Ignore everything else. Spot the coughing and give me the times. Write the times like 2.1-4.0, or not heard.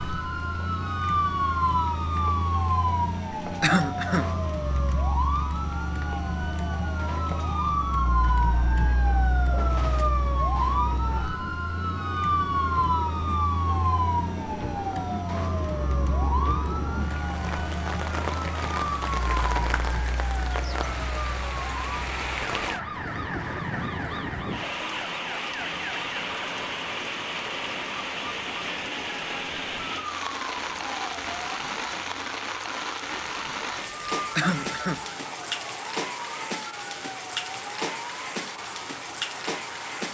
3.6-4.2, 34.4-35.0.